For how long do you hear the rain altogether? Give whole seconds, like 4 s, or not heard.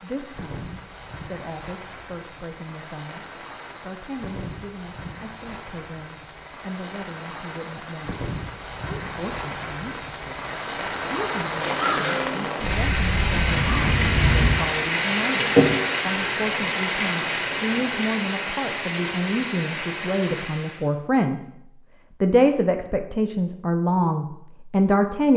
21 s.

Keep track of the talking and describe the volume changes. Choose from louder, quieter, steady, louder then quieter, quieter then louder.
louder.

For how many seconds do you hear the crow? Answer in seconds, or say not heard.
3 s.